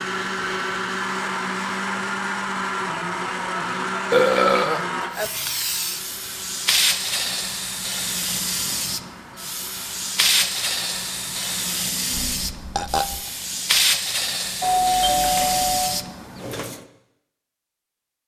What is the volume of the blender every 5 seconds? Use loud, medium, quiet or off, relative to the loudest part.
loud, quiet, quiet, off.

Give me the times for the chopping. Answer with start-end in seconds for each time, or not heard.
not heard.